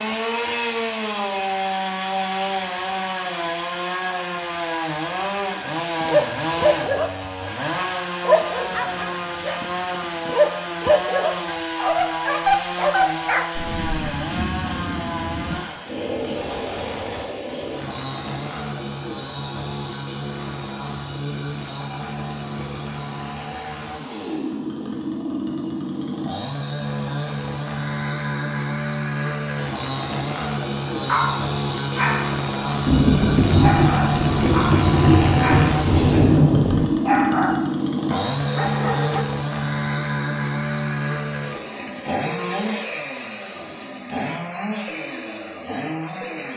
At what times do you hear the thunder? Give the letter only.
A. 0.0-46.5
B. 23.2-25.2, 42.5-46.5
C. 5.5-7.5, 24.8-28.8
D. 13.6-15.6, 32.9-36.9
D.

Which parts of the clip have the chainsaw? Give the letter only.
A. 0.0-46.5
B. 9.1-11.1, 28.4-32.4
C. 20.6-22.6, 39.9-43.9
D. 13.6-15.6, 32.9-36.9
A.